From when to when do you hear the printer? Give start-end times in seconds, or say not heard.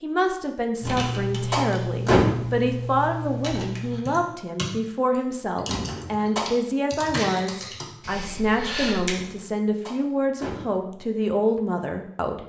not heard.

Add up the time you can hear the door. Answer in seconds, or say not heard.
4 s.